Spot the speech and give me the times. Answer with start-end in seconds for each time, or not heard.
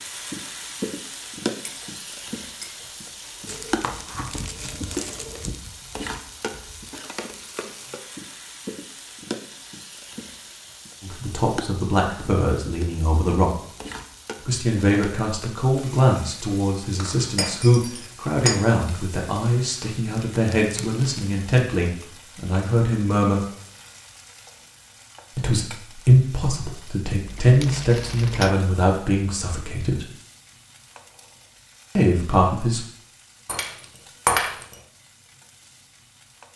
11.0-13.6, 14.4-23.4, 25.4-30.1, 31.9-32.8.